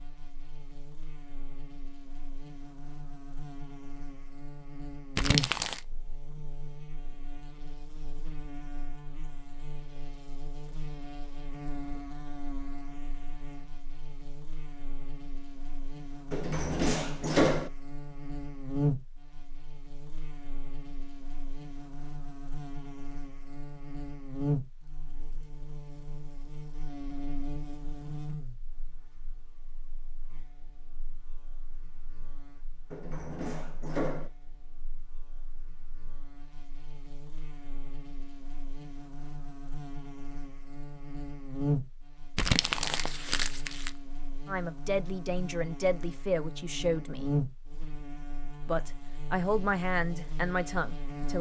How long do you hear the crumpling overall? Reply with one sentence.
The crumpling can be heard for 2 seconds in total.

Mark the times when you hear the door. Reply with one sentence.
You can hear the door from 16.3 to 17.7 s and from 32.9 to 34.3 s.